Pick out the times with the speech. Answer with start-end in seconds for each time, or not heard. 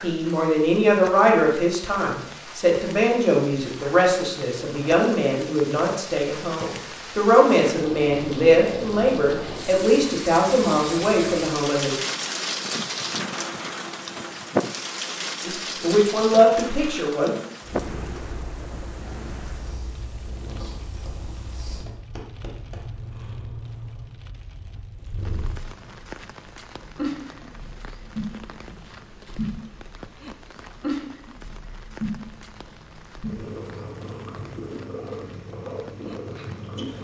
0.0-12.0, 15.4-17.3.